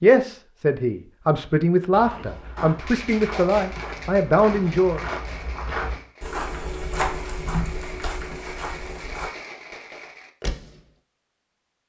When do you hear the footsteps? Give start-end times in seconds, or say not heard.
1.9-9.3.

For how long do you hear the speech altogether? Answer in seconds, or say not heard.
5 s.